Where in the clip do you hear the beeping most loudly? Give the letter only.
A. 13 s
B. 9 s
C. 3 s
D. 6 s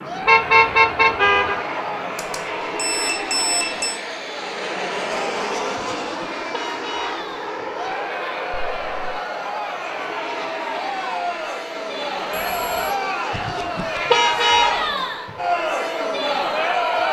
C.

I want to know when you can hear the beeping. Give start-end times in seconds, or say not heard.
2.1-4.0, 8.5-9.2, 12.3-12.9.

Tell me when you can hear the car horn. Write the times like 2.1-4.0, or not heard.
0.2-1.6, 5.8-7.2, 13.3-14.9.